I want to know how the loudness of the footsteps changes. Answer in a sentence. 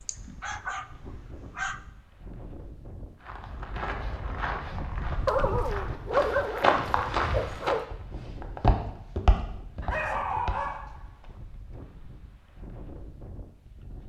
The volume of the footsteps goes up, then down.